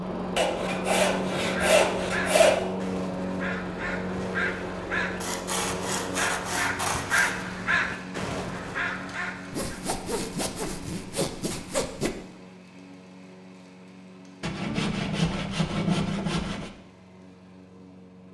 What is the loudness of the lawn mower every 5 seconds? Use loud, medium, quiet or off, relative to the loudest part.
loud, medium, quiet, quiet.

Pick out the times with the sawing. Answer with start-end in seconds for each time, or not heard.
0.3-2.6, 5.2-7.5, 9.5-12.1, 14.4-16.7.